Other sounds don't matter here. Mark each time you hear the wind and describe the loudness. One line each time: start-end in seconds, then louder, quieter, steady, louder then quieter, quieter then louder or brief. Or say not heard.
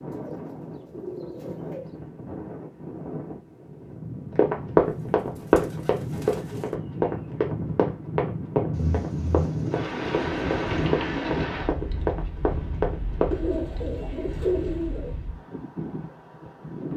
0.0-16.9 louder then quieter.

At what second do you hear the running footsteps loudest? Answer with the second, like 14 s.
5 s.